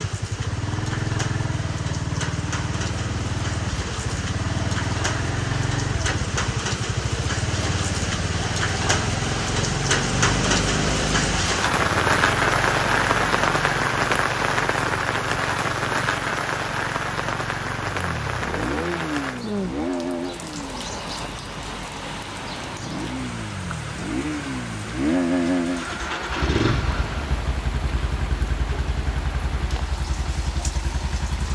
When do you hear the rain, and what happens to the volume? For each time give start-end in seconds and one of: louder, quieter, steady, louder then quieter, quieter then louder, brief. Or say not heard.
0.0-31.5 louder then quieter.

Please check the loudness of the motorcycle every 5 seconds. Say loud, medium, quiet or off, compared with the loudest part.
loud, loud, loud, medium, medium, loud, medium.